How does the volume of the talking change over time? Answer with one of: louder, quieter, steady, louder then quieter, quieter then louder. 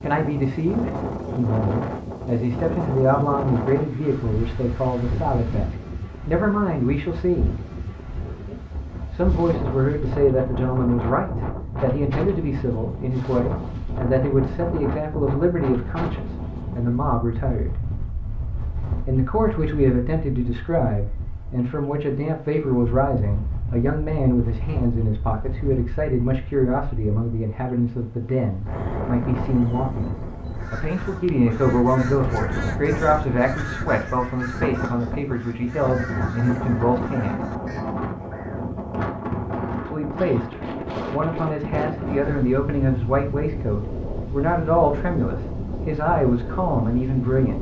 steady.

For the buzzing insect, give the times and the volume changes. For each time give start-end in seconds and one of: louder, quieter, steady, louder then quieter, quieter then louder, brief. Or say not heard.
not heard.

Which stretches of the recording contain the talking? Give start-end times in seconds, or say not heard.
0.0-7.5, 9.1-17.7, 19.1-37.5, 39.9-47.5.